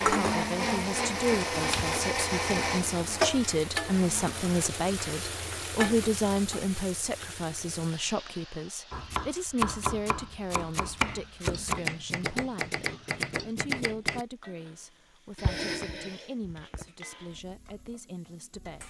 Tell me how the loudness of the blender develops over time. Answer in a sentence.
The volume of the blender goes down.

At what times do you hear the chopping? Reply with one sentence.
You can hear the chopping from 8.9 to 14.2 s.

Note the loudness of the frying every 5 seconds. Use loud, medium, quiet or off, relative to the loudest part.
loud, medium, quiet, quiet.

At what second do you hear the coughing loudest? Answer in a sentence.
The volume of the coughing peaks at 16 seconds.